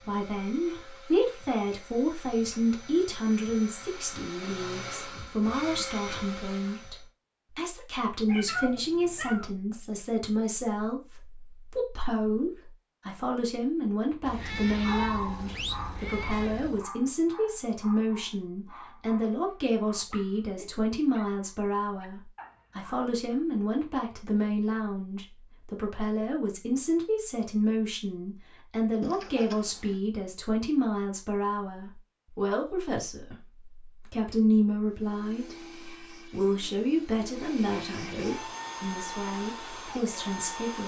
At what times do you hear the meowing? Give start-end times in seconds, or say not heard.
8.2-9.5, 14.2-16.9, 29.0-29.9.